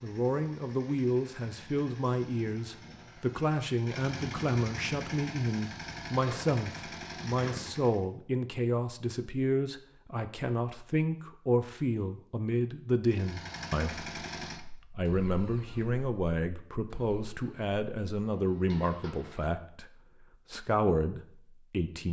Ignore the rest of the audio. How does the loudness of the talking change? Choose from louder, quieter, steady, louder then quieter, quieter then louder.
steady.